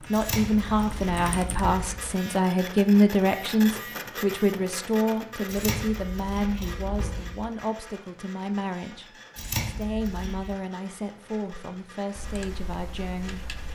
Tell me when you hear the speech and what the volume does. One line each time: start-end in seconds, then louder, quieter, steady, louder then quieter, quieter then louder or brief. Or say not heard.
0.0-13.5 quieter.